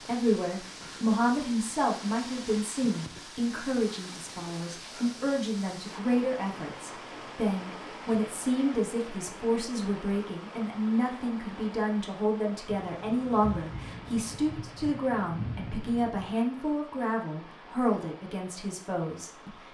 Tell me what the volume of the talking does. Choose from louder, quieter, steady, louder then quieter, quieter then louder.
steady.